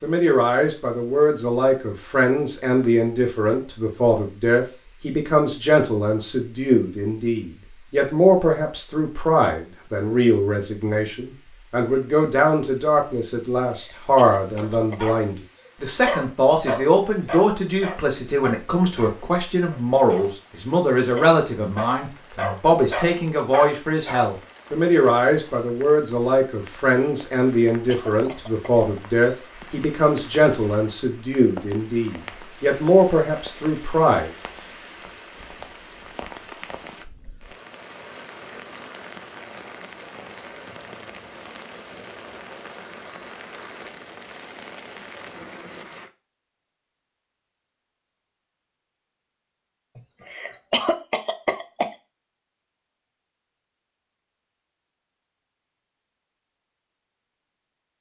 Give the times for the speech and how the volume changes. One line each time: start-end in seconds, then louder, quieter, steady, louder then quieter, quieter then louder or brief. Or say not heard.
0.0-34.3 steady.